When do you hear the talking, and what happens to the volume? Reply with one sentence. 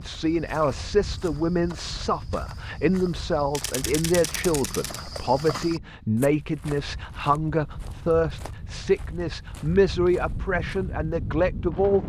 You can hear the talking from 0.0 to 12.0 s, at a steady volume.